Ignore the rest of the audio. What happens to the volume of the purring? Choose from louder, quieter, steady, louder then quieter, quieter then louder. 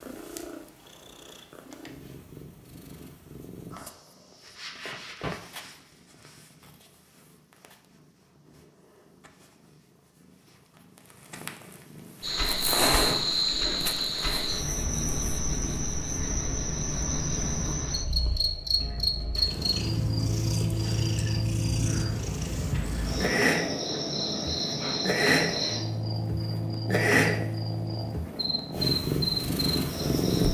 quieter then louder.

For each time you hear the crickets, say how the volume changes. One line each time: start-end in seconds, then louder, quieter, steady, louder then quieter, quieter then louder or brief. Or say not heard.
12.2-30.4 steady.